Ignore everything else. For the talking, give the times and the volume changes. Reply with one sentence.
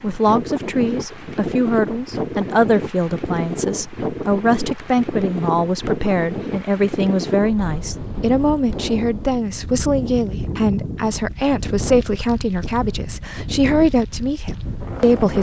You can hear the talking from 0.0 to 15.3 s, at a steady volume.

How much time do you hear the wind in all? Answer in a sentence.
You can hear the wind for 15 seconds altogether.